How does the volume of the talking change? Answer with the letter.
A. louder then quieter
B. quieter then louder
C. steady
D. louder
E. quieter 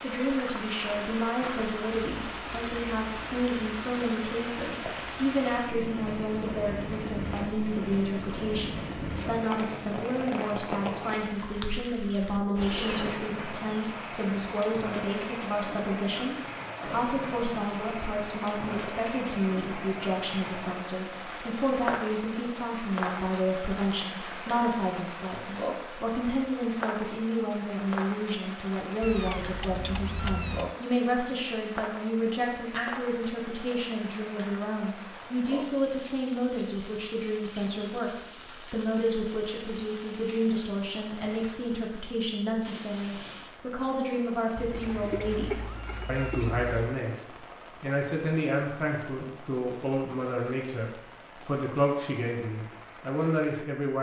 C.